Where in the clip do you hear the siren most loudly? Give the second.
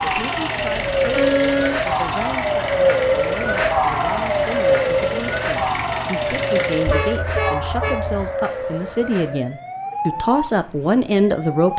3 s.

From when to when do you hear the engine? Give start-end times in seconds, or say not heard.
0.0-7.2.